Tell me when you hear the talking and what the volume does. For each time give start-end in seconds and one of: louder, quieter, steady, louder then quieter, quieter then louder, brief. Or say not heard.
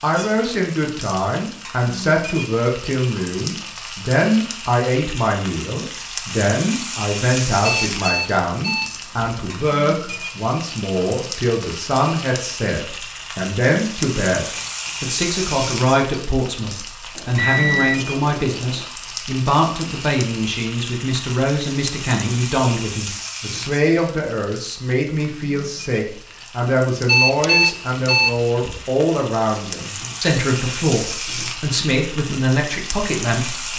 0.0-33.7 steady.